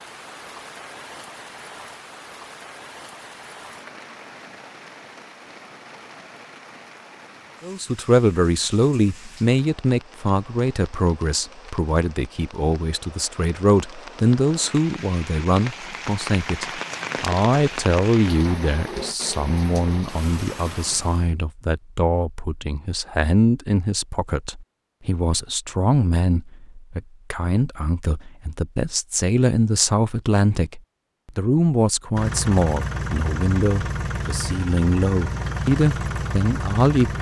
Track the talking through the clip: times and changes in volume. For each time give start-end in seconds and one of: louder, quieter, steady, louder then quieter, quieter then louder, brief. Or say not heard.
7.6-37.1 steady.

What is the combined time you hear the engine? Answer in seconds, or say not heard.
5 s.